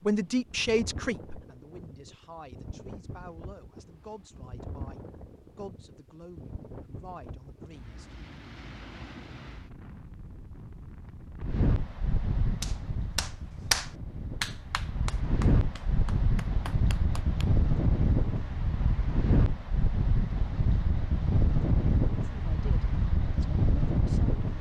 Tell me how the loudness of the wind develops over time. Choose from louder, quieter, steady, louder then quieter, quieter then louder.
louder.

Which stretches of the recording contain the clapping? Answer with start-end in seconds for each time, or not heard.
12.6-17.5.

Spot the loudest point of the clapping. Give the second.
14 s.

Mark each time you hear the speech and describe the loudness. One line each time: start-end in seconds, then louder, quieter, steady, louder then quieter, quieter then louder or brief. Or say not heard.
0.0-8.1 quieter
22.2-24.4 brief.